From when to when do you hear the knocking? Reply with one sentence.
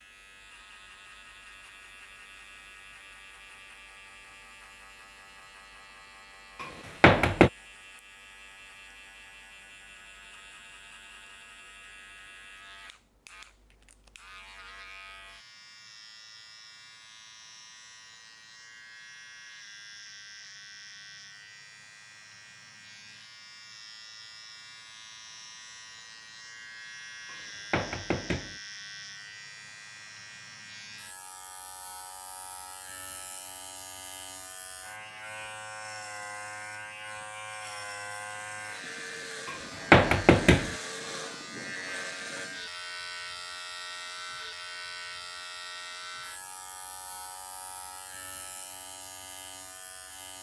You can hear the knocking from 6.6 to 7.5 s, from 27.3 to 28.6 s and from 39.5 to 40.8 s.